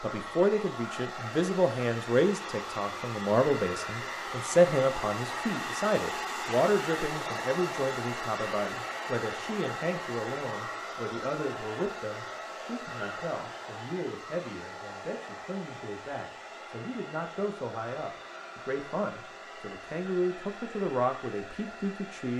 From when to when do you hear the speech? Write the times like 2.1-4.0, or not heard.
0.0-22.3.